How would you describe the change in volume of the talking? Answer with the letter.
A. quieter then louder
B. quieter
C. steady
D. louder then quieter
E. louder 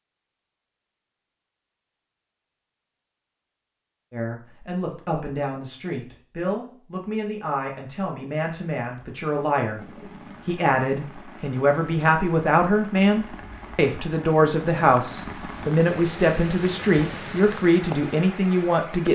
E.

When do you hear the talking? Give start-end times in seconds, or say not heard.
4.1-9.8, 10.4-19.1.